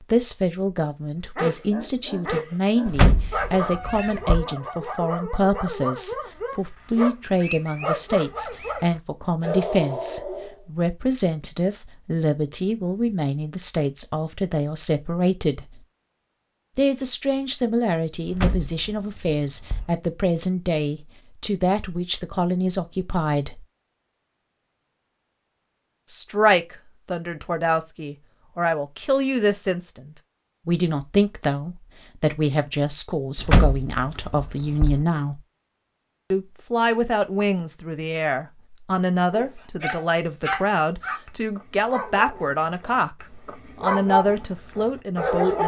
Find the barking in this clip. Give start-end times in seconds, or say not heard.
1.4-10.6, 39.3-45.6.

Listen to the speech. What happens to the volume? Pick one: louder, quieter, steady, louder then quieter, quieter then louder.
steady.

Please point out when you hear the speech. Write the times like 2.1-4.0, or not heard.
0.1-15.7, 16.8-23.6, 26.1-35.4, 36.3-45.6.